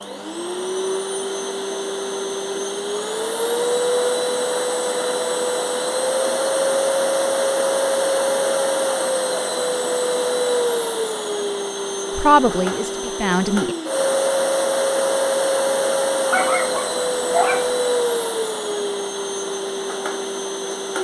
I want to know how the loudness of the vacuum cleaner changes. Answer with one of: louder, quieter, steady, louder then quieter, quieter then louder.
steady.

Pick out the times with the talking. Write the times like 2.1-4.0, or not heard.
12.2-13.8.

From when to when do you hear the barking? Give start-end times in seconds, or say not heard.
16.3-17.7.